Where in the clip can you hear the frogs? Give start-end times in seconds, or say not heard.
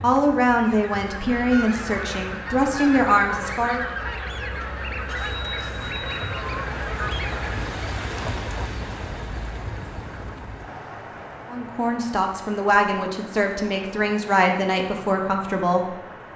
not heard.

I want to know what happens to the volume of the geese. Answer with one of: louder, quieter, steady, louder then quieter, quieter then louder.
steady.